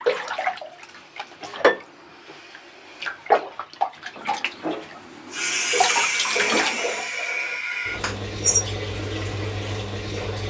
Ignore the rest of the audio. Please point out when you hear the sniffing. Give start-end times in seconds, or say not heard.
8.0-8.8.